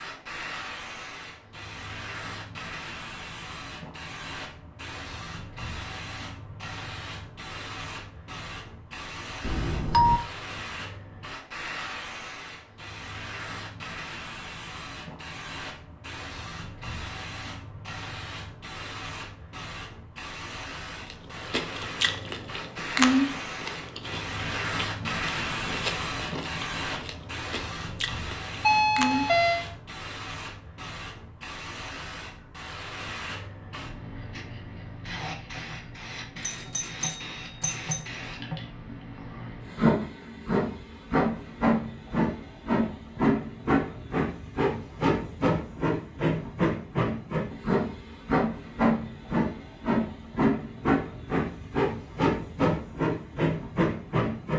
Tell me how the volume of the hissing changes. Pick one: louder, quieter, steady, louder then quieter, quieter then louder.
louder.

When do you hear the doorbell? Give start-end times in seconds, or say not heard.
9.4-10.2, 28.6-29.6, 36.4-38.0.